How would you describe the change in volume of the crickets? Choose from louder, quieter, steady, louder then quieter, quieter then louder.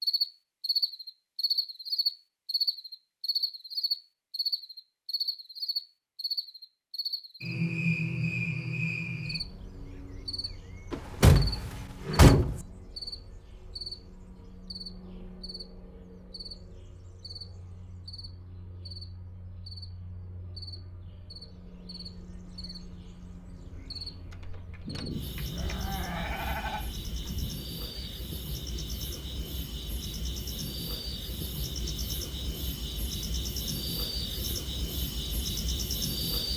quieter then louder.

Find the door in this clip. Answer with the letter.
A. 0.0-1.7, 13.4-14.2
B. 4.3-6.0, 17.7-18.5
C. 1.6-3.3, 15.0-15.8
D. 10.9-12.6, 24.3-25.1
D.